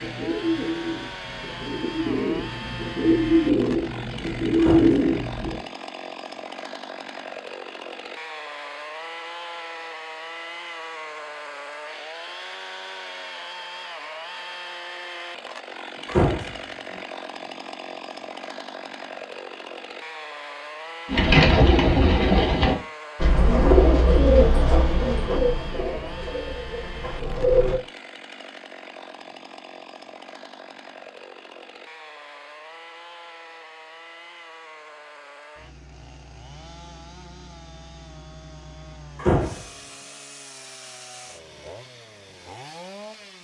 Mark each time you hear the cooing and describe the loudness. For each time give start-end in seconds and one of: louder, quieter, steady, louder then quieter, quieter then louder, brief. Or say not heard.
0.0-5.7 louder
21.1-27.8 quieter.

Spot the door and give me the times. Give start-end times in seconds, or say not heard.
4.5-5.0, 16.1-16.6, 39.1-39.6.